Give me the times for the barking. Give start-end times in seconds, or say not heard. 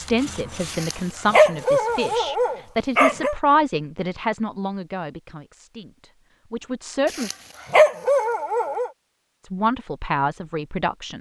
0.7-3.4, 7.0-8.9.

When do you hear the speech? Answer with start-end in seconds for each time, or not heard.
0.0-7.3, 9.4-11.1.